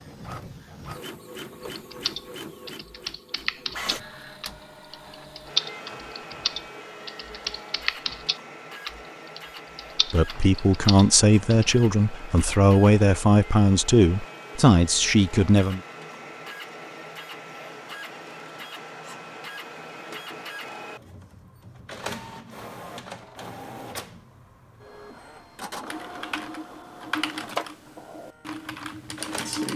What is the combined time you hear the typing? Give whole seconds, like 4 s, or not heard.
14 s.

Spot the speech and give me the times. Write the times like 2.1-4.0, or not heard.
10.1-15.8.